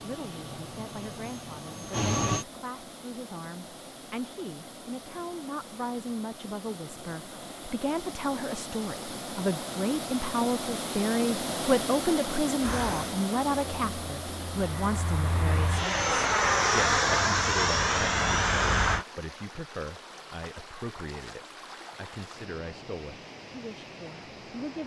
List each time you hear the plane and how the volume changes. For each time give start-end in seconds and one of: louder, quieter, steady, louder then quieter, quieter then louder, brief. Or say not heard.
0.0-2.5 brief
12.6-19.1 louder.